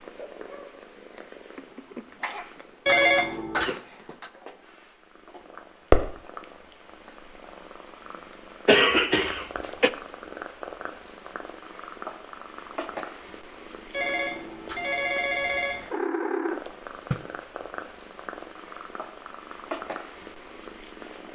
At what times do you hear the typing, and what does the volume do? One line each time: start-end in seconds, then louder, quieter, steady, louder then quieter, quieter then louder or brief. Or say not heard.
not heard.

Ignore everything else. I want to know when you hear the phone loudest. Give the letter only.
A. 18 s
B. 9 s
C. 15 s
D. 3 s
D.